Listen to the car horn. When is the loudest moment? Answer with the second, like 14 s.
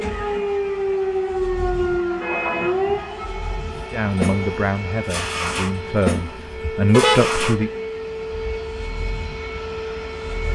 7 s.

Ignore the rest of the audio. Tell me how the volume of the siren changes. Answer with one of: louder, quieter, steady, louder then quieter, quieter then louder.
quieter.